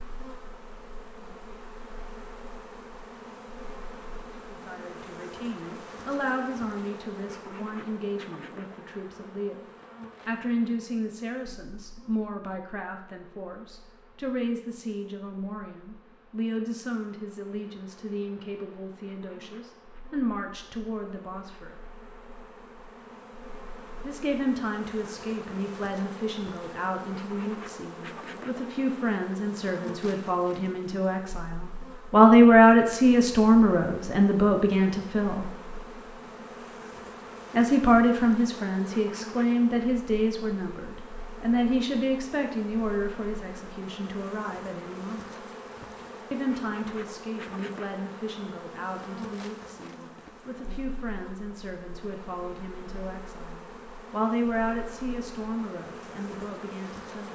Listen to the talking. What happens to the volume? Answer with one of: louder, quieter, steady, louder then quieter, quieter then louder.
louder then quieter.